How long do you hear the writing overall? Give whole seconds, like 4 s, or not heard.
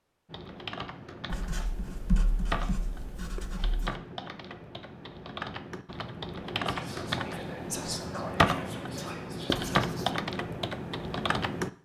3 s.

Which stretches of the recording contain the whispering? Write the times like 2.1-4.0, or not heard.
6.5-9.9.